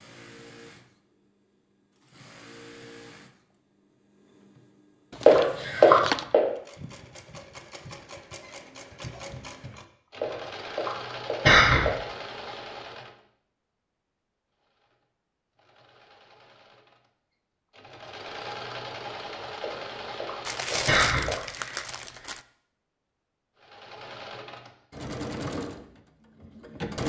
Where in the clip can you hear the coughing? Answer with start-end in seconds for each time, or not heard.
5.2-6.4, 10.2-11.9, 19.6-21.4.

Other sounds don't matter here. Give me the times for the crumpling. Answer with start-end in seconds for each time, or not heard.
5.1-6.3, 20.4-22.4.